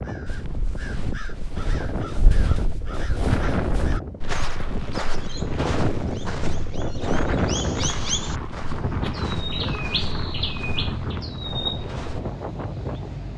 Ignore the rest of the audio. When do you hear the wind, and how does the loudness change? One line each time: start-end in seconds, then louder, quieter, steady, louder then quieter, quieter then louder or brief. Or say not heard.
0.0-13.3 louder then quieter.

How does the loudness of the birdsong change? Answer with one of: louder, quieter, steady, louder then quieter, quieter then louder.
louder.